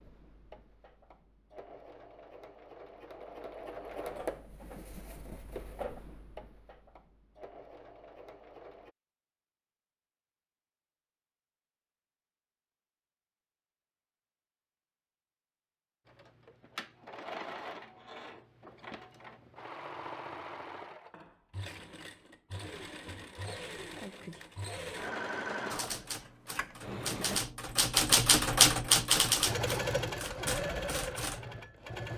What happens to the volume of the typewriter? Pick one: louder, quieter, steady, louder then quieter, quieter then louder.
louder then quieter.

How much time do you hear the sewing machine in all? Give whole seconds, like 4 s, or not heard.
23 s.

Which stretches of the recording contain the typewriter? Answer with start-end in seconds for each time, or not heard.
25.7-31.4.